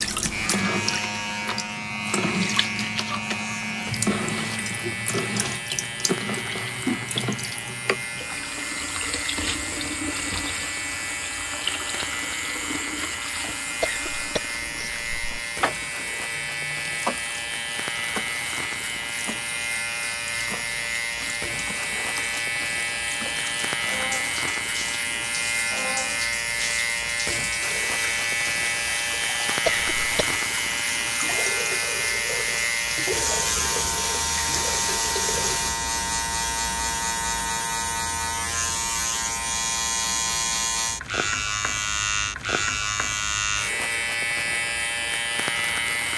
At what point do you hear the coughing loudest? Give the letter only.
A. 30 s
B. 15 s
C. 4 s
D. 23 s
A.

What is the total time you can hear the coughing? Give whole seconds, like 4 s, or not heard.
2 s.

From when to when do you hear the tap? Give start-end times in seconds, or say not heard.
0.0-35.7.